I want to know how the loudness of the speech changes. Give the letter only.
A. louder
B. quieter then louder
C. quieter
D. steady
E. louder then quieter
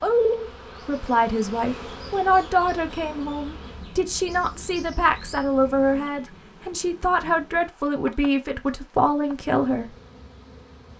D.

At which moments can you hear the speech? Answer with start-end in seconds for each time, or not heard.
0.0-9.8.